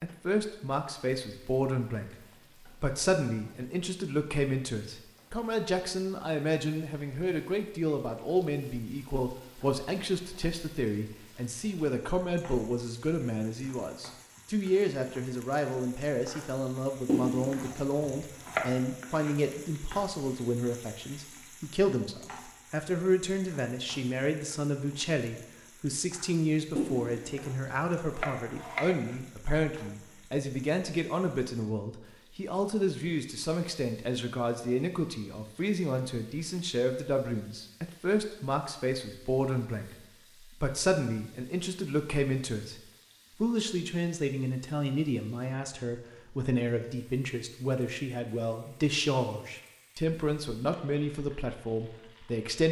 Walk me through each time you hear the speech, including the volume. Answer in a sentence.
You can hear the speech briefly from 0.0 to 2.1 s; from 2.8 to 40.0 s, at a steady volume; and from 40.6 to 52.6 s, at a steady volume.